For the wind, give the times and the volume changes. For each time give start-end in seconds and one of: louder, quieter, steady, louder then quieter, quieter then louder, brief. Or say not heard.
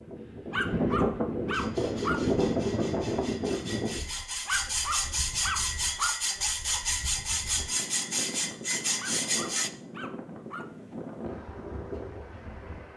0.0-12.9 quieter then louder.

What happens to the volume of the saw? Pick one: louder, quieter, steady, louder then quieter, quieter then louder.
louder.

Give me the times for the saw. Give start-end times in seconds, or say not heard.
1.5-9.7.